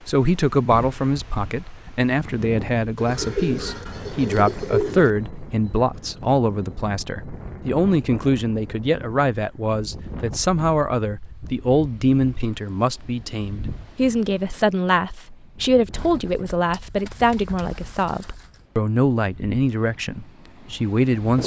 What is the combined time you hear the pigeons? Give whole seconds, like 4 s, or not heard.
5 s.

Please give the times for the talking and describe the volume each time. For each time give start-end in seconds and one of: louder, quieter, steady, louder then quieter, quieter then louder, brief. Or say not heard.
0.1-21.4 steady.